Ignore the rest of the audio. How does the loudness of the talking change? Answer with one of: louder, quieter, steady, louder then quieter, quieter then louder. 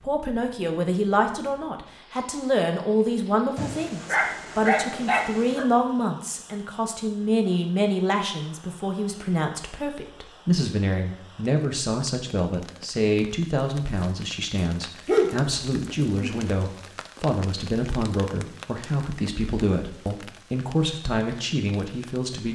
steady.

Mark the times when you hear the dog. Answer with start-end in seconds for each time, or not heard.
3.5-5.7, 15.1-16.5.